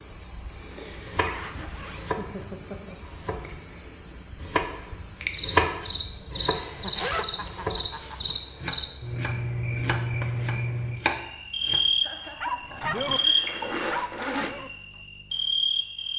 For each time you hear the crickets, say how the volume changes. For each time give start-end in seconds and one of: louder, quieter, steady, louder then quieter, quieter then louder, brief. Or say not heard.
0.0-16.1 louder.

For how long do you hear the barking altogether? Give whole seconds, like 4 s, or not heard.
2 s.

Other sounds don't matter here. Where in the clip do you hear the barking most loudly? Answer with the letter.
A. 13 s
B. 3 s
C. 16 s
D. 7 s
A.